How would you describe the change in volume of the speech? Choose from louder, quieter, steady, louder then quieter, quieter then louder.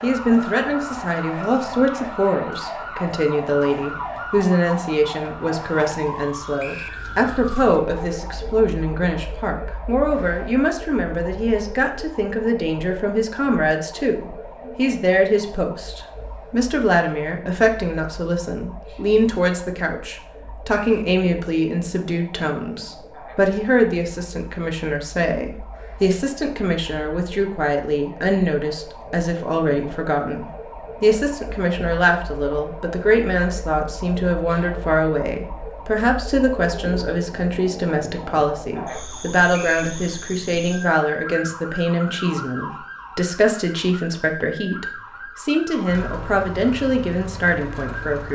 steady.